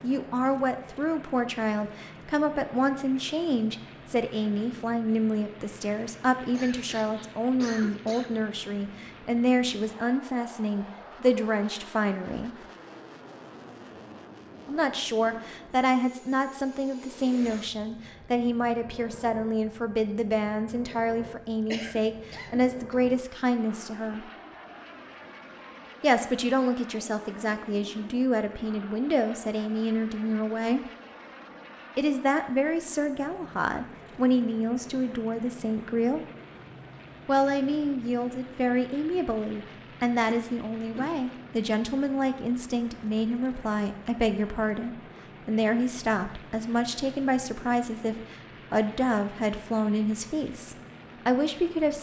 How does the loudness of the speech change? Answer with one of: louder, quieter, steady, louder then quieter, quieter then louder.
steady.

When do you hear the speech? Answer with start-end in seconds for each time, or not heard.
0.0-12.5, 14.7-24.3, 26.0-30.8, 31.9-36.2, 37.2-51.9.